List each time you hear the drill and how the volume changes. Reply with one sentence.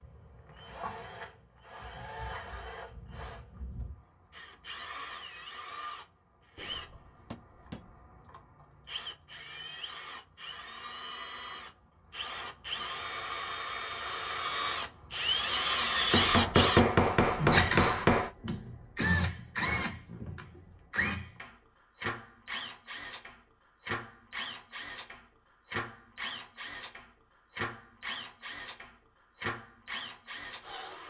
You can hear the drill from 0.0 to 31.0 s, getting louder then quieter.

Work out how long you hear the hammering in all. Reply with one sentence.
The hammering can be heard for 4 seconds in total.